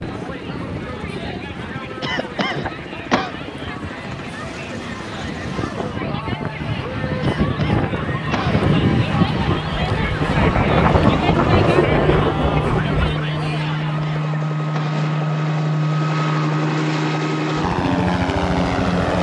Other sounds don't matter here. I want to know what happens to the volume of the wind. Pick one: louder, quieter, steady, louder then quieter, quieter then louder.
louder.